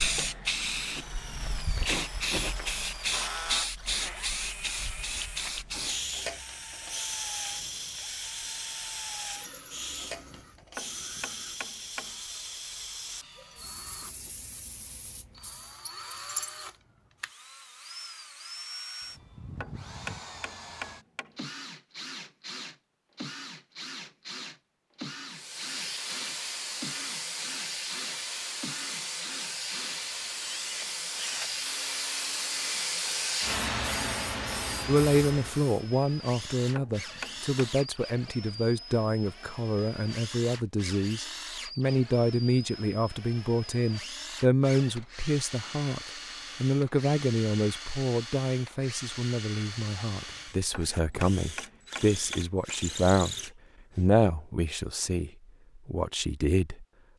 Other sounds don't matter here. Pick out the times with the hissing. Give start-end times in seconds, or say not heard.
0.0-15.8, 25.2-35.9.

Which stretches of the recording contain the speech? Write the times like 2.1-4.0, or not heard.
34.9-56.9.